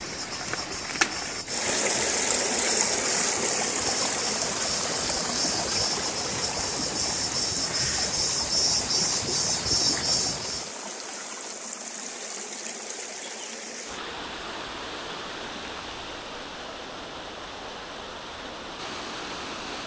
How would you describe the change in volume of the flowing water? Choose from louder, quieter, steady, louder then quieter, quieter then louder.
quieter.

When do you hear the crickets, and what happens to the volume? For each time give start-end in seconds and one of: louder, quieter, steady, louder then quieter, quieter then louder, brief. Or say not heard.
0.0-10.7 louder.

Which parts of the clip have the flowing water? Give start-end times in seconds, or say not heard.
0.0-19.8.